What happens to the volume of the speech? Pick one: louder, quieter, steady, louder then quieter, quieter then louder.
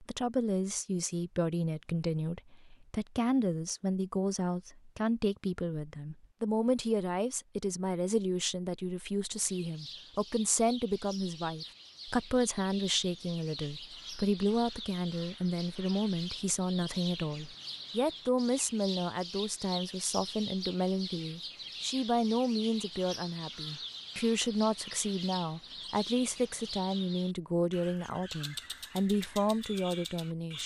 steady.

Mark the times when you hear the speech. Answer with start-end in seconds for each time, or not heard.
0.0-30.6.